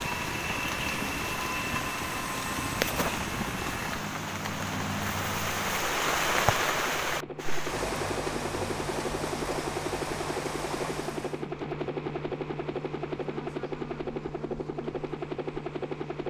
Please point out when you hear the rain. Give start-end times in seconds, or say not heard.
0.0-11.4.